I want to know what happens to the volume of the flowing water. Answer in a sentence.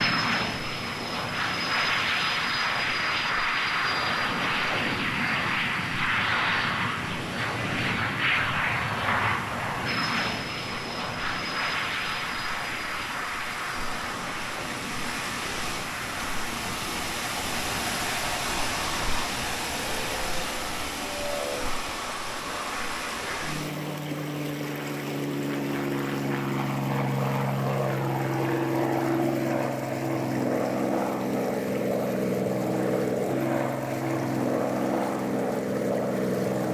The loudness of the flowing water goes up, then down.